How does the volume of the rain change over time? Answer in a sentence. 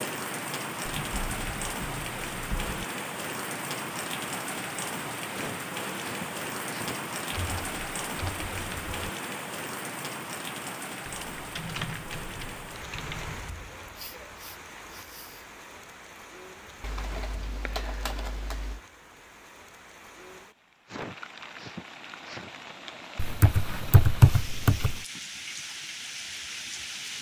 The volume of the rain goes down, then up.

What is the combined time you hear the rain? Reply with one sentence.
You can hear the rain for 27 seconds altogether.